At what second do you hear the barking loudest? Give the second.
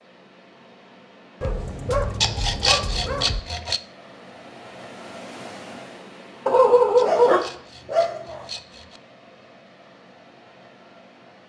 7 s.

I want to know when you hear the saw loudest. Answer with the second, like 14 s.
3 s.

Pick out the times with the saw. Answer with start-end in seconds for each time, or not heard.
2.2-3.8, 7.0-9.0.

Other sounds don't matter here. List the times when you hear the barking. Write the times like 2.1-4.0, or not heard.
1.4-3.4, 6.5-8.4.